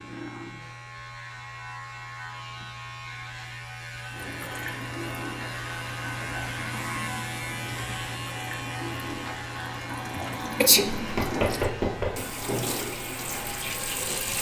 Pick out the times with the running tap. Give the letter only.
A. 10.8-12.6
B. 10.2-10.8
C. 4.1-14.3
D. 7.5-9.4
C.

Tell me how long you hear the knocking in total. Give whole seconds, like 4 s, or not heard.
2 s.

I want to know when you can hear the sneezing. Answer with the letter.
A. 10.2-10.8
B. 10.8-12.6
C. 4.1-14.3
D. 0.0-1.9
A.